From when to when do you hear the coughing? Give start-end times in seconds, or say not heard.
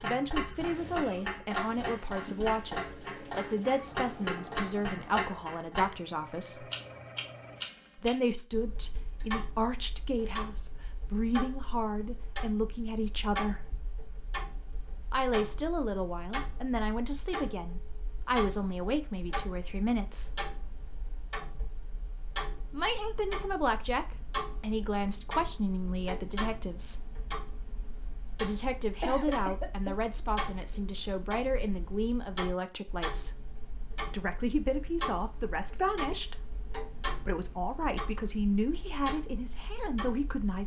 29.0-29.9.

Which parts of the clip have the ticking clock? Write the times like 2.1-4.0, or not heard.
0.0-40.6.